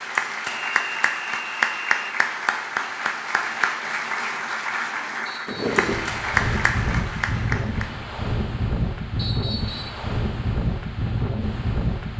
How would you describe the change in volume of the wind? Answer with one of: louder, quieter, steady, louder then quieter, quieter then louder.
steady.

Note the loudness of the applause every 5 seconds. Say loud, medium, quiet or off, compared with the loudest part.
loud, loud, off.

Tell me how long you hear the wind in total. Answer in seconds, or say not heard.
7 s.